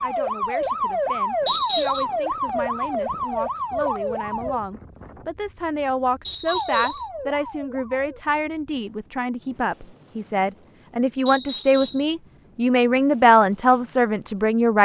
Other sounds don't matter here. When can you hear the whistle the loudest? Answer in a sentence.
The volume of the whistle peaks at 2 seconds.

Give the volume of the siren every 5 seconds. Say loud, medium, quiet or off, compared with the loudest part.
loud, medium, off.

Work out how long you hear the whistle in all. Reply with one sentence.
The whistle can be heard for 2 seconds in total.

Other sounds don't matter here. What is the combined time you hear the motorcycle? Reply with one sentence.
The motorcycle can't be heard in this clip.